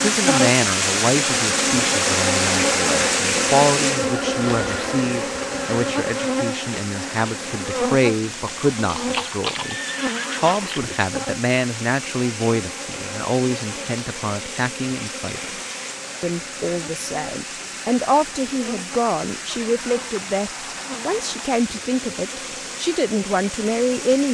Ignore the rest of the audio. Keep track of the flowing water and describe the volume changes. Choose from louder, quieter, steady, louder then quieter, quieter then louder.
quieter.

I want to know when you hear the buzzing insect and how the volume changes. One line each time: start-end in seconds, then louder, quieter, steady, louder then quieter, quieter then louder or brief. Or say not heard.
0.0-24.3 quieter.